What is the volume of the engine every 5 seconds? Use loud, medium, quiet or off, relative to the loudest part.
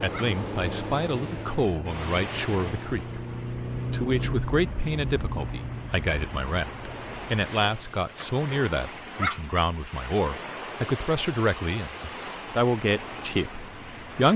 loud, medium, off.